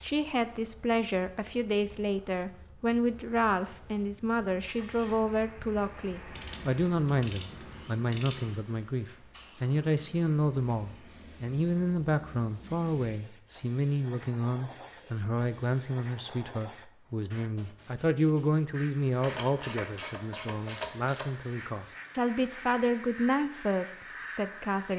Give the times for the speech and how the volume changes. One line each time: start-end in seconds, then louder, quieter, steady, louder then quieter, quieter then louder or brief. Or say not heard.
0.0-24.9 steady.